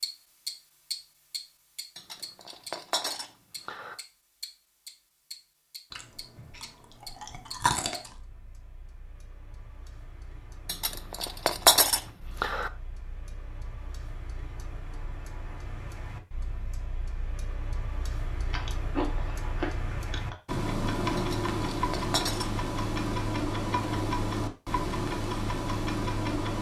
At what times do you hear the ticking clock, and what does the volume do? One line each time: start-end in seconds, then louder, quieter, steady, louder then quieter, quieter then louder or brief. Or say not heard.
0.0-26.5 quieter then louder.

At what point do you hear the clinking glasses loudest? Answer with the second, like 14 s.
12 s.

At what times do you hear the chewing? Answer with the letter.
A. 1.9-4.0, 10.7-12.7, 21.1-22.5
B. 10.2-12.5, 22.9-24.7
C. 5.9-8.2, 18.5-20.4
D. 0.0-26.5
C.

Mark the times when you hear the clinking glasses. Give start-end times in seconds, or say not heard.
1.9-4.0, 10.7-12.7, 21.1-22.5.